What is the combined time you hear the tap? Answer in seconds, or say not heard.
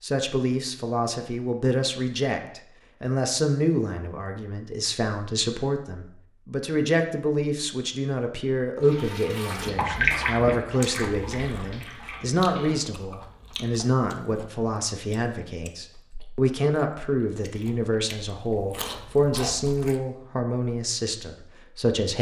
4 s.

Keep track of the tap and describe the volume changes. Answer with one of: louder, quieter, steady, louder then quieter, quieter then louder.
louder then quieter.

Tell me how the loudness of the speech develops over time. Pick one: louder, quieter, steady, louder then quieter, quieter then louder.
steady.